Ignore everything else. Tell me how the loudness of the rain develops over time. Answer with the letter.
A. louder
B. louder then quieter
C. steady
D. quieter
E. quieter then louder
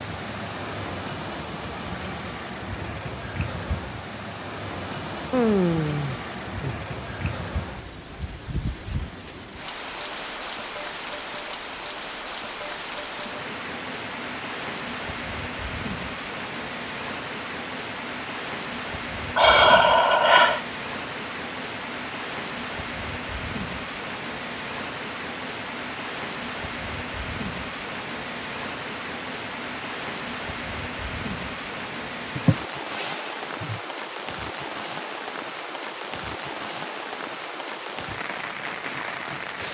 C.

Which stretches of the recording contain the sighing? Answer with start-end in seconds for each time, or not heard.
5.3-6.8, 19.4-20.6, 32.4-33.8.